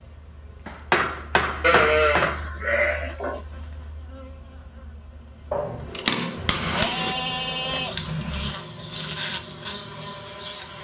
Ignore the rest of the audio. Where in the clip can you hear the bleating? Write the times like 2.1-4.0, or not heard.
1.6-3.4, 6.3-8.6.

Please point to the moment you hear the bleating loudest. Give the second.
2 s.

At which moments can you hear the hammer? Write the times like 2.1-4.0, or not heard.
0.7-2.5, 5.5-7.2.